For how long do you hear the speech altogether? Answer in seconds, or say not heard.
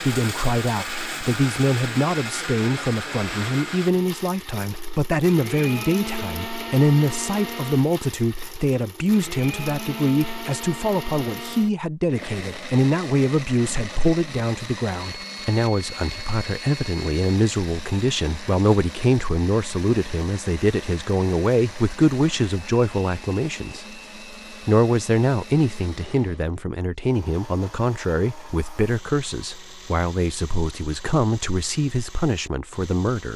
33 s.